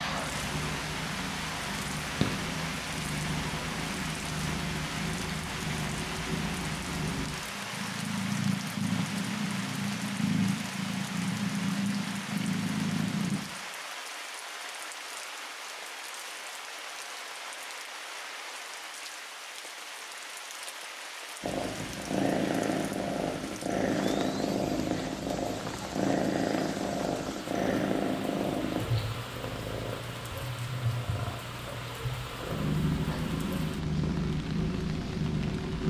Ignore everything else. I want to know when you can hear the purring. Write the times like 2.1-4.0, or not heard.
0.0-13.4, 21.4-35.8.